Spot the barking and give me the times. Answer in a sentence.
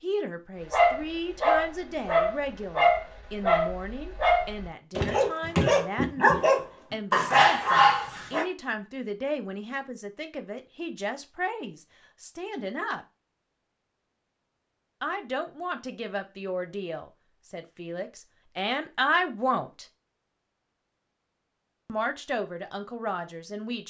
You can hear the barking from 0.7 to 8.4 s.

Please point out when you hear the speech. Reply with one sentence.
The speech can be heard from 0.0 to 13.1 s, from 15.0 to 19.9 s and from 21.9 to 23.8 s.